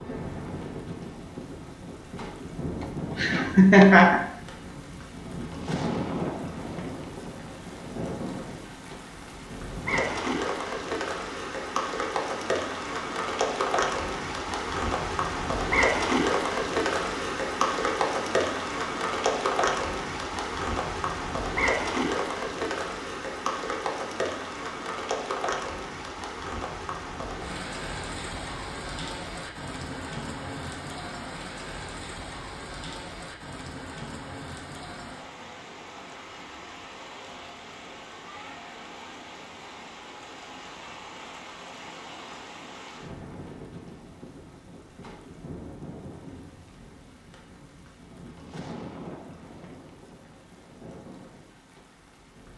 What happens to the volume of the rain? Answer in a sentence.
The volume of the rain goes up, then down.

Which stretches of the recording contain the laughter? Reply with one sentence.
The laughter can be heard from 3.1 to 4.2 s.